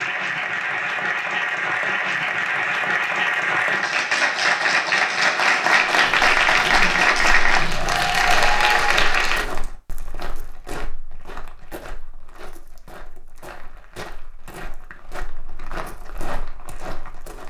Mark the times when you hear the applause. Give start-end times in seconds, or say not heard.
0.0-9.4.